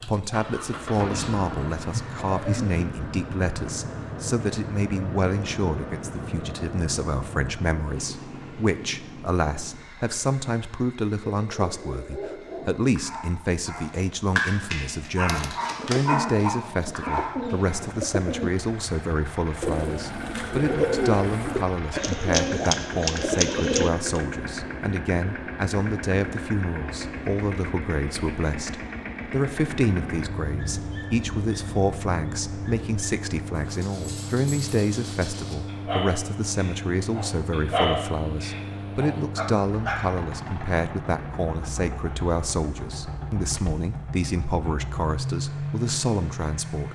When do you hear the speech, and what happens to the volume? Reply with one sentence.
The speech can be heard from 0.1 to 46.8 s, at a steady volume.